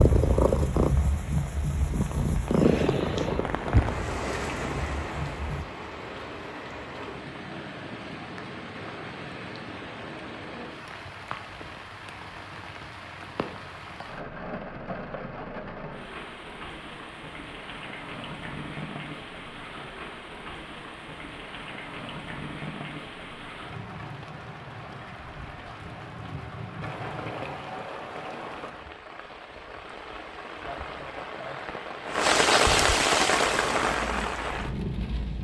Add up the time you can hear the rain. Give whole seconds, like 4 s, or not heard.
35 s.